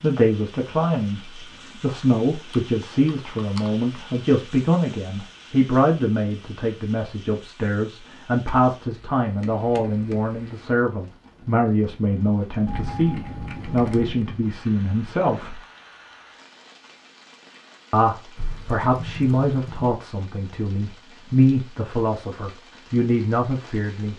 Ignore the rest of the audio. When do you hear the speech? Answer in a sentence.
The speech can be heard from 0.0 to 15.6 s and from 17.9 to 24.1 s.